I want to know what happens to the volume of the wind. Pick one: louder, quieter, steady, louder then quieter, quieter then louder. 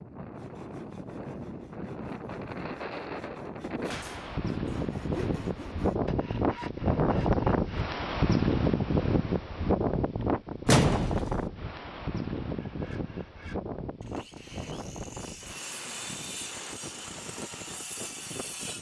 louder then quieter.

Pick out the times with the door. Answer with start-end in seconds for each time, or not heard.
10.7-11.5.